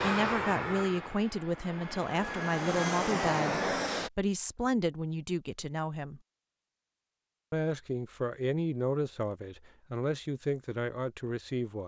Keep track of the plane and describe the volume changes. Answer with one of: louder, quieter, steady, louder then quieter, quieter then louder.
quieter then louder.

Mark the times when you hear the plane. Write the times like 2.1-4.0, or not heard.
0.0-4.1.